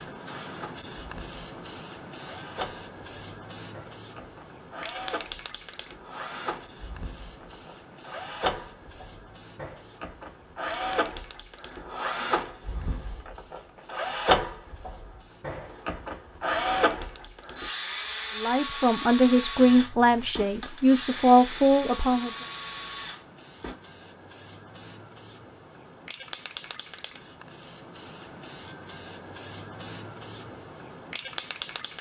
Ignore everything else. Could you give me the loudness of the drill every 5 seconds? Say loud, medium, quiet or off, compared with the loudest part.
medium, medium, loud, loud, medium, off, off.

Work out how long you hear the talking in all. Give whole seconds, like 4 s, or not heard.
4 s.